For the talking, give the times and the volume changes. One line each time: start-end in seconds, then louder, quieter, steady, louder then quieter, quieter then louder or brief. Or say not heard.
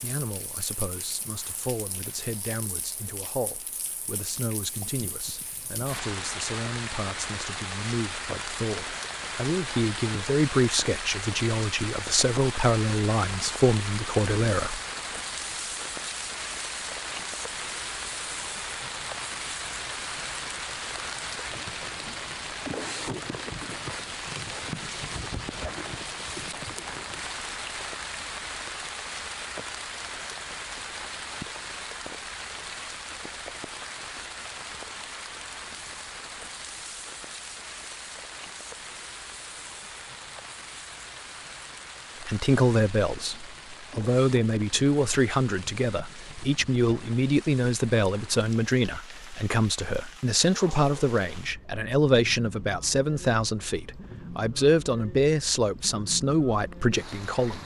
0.0-14.8 louder
42.2-57.6 steady.